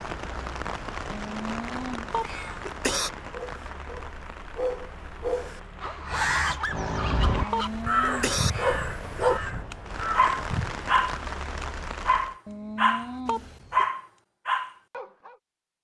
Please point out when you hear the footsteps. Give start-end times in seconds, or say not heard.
not heard.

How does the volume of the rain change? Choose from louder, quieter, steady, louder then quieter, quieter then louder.
quieter then louder.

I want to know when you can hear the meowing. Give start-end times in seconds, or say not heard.
1.1-2.6, 7.3-8.8, 12.4-13.6.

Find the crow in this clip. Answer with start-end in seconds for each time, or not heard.
6.0-10.8.